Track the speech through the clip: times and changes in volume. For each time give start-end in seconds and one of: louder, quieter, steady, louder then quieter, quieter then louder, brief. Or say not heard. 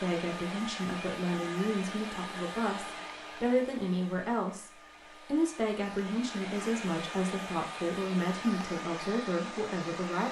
0.0-10.2 steady.